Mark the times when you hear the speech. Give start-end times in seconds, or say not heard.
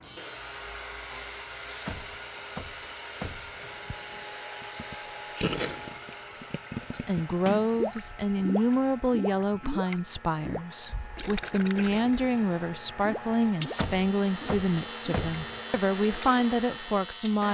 6.9-17.4.